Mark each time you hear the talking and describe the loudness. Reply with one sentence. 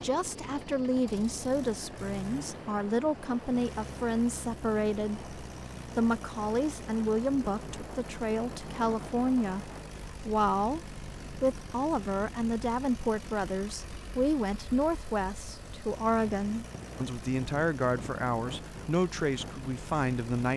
The talking can be heard from 0.0 to 20.5 s, at a steady volume.